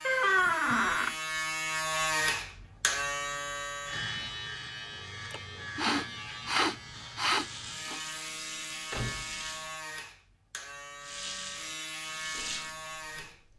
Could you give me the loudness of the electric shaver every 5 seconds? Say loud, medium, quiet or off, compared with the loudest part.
loud, medium, medium.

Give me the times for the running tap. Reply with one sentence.
You can hear the running tap from 7.3 to 9.7 s and from 11.0 to 13.5 s.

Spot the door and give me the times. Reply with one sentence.
The door can be heard from 0.1 to 1.1 s and from 8.9 to 9.4 s.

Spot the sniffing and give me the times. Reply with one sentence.
You can hear the sniffing from 5.3 to 8.0 s.